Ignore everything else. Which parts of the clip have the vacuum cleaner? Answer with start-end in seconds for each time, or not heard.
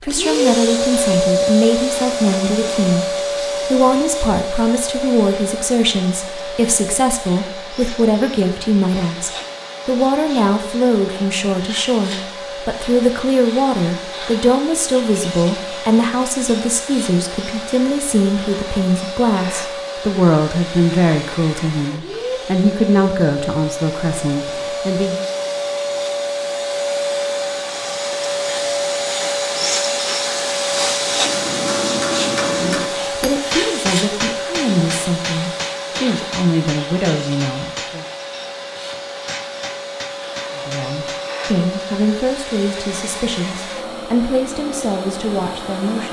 0.0-46.0.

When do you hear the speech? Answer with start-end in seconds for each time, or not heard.
0.0-25.2, 32.5-38.0, 40.5-46.0.